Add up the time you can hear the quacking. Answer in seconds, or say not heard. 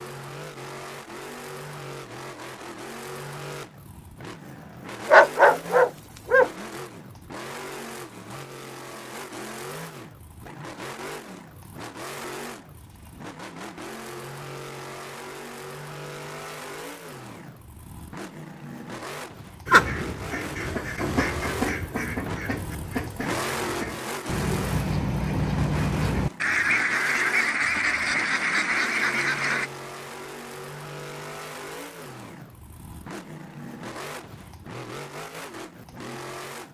10 s.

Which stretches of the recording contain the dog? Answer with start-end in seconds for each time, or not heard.
5.0-6.5.